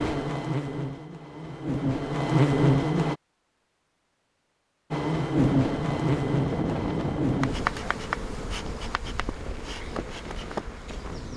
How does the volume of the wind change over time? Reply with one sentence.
The volume of the wind goes down.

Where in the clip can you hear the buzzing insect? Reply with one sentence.
You can hear the buzzing insect from 0.0 to 3.1 s and from 4.9 to 11.3 s.